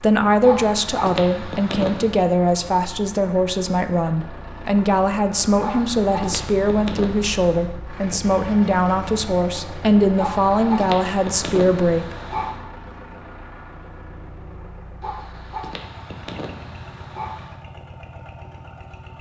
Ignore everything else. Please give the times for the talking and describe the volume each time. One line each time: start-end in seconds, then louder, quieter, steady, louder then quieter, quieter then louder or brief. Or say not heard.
0.0-12.2 steady.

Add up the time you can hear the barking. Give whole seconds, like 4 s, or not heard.
9 s.